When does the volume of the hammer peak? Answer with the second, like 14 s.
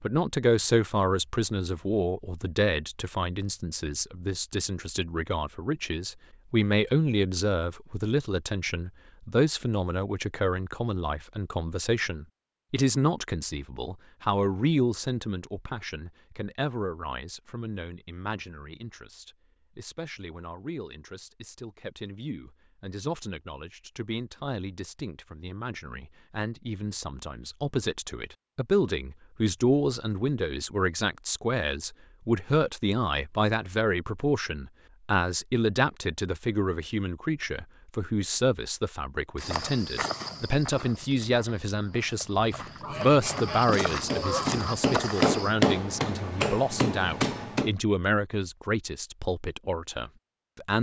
46 s.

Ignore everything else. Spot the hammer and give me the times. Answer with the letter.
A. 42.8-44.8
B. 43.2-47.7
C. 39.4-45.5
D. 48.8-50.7
B.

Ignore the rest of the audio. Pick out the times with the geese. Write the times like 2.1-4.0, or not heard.
42.8-44.8.